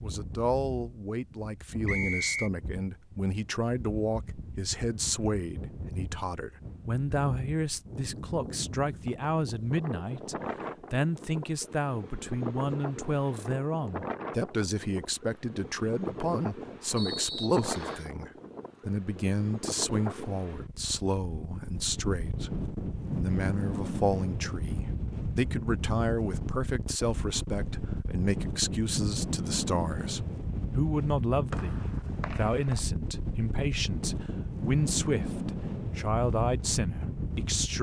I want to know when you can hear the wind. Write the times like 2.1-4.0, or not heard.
0.0-37.7.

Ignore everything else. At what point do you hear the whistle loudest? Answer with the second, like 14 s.
2 s.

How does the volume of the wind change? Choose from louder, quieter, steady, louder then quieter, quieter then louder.
louder.